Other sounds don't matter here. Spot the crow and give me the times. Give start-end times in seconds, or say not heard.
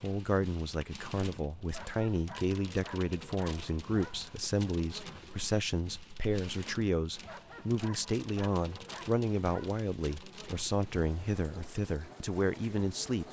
not heard.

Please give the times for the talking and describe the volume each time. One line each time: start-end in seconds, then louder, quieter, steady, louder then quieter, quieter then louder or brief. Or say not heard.
0.0-13.2 steady.